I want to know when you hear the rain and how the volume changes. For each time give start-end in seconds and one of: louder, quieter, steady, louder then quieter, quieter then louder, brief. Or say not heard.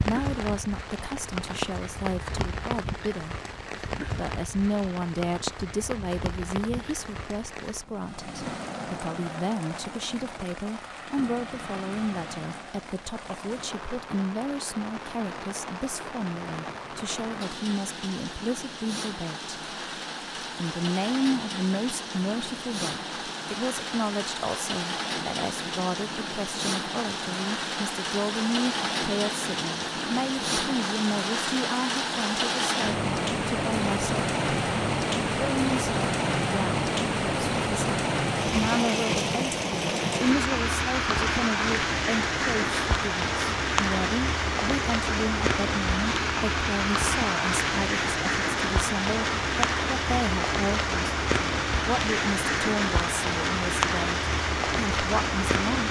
0.0-55.8 louder.